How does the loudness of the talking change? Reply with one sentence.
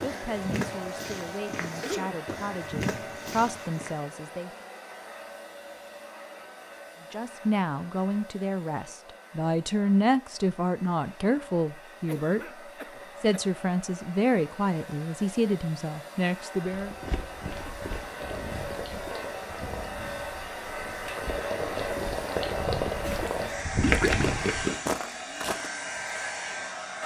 The volume of the talking goes up.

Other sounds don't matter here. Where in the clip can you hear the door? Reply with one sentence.
You can't hear the door here.